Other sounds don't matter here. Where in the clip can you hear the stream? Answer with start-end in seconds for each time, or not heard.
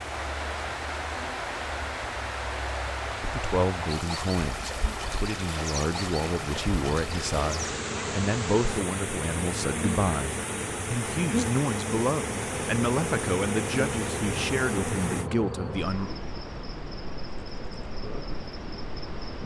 0.0-15.3.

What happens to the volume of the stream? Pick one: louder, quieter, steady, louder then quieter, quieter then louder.
steady.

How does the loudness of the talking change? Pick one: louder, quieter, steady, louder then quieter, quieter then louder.
steady.